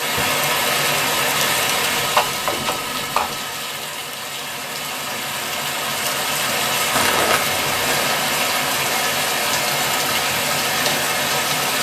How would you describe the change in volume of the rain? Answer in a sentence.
The loudness of the rain goes down, then up.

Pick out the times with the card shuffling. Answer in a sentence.
The card shuffling can be heard from 1.9 to 3.4 s and from 6.9 to 8.2 s.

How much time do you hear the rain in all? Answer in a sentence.
The rain can be heard for 12 seconds in total.